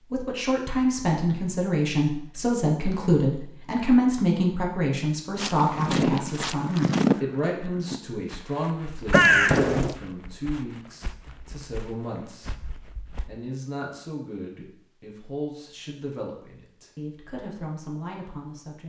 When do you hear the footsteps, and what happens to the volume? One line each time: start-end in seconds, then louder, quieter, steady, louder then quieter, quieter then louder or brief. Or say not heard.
5.3-13.3 quieter.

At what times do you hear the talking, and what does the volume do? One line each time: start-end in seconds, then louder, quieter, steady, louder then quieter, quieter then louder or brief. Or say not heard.
0.1-18.8 quieter.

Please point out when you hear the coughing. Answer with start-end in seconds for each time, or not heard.
9.1-9.9.